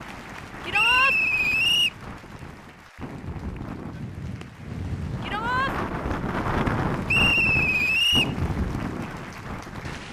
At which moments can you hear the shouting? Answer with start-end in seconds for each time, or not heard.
0.6-1.1, 5.2-5.8.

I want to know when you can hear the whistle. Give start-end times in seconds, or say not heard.
0.7-1.9, 7.0-8.3.